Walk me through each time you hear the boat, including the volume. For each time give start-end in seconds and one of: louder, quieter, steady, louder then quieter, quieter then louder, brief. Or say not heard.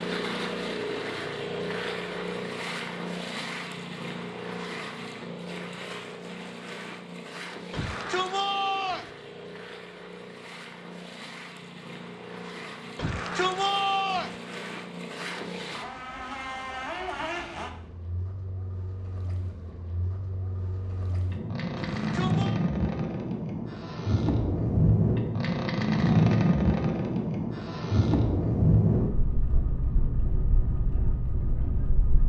0.0-32.2 quieter then louder.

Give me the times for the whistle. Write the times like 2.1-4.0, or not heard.
not heard.